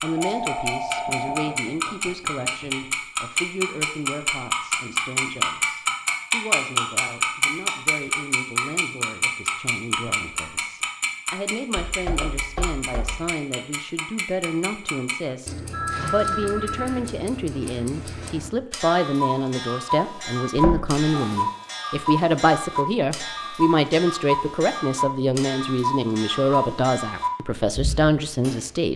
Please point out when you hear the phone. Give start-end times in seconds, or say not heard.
0.0-1.6, 15.7-16.9, 20.9-21.4.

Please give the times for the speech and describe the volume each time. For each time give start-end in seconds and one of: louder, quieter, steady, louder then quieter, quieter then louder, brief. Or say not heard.
0.0-28.9 louder.